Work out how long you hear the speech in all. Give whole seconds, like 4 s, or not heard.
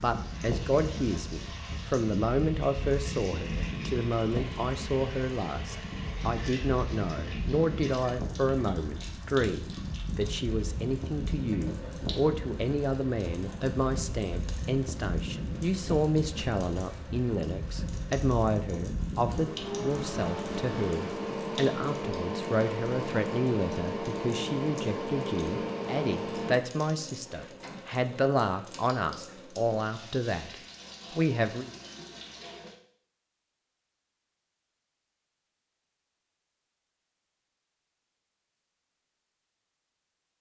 31 s.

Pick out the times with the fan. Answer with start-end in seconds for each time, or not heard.
0.0-26.6.